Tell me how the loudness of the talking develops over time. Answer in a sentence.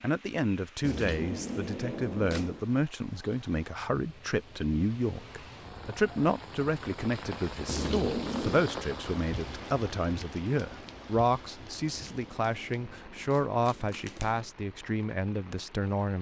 The loudness of the talking stays about the same.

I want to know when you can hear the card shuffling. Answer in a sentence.
The card shuffling can be heard from 0.8 to 2.6 s, from 7.7 to 8.7 s and from 11.8 to 14.4 s.